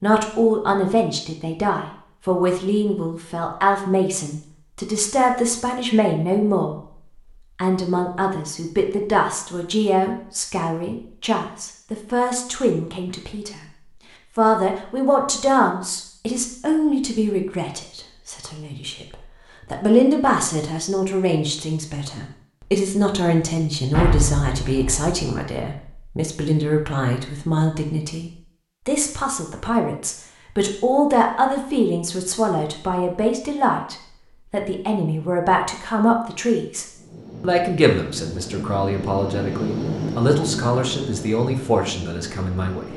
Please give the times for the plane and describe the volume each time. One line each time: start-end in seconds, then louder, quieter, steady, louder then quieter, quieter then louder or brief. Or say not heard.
37.0-42.9 louder then quieter.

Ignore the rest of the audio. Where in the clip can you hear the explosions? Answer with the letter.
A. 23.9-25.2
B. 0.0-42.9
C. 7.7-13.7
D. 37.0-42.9
A.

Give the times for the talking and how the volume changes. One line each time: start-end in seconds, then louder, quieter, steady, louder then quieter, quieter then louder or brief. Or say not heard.
0.0-42.9 steady.